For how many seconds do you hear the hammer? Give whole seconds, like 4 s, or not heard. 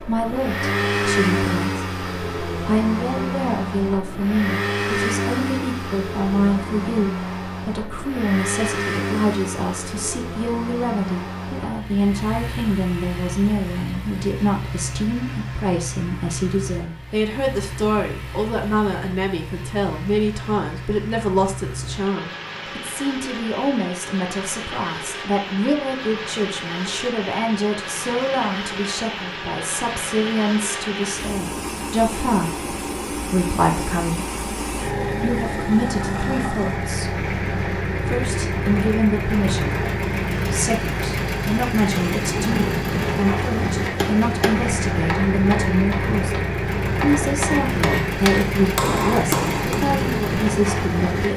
6 s.